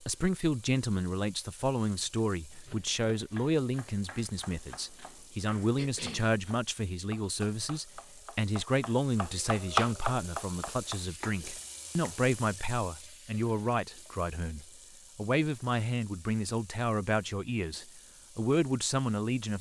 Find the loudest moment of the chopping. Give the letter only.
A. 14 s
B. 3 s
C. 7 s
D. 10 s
D.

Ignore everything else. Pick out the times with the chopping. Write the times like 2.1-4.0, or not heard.
2.5-12.2.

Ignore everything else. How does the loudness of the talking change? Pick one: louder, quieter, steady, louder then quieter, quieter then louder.
steady.